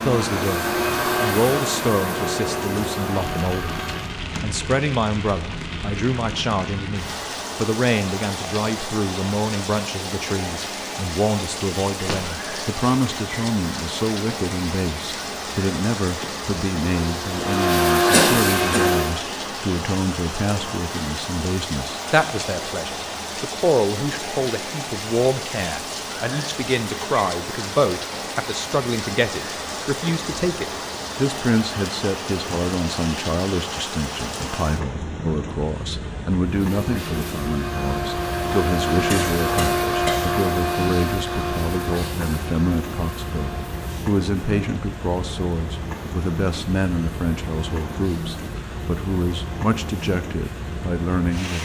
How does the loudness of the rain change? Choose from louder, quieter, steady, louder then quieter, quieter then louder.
steady.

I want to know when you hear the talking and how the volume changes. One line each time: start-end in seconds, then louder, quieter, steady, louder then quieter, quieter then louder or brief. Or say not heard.
0.0-51.6 steady.